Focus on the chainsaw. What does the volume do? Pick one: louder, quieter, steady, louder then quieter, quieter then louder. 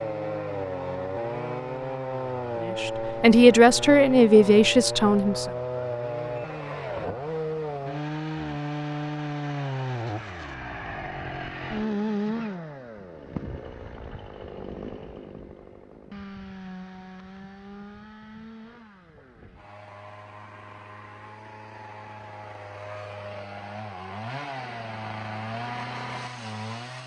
quieter then louder.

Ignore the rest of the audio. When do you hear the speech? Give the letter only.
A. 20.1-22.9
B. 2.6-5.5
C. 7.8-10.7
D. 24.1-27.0
B.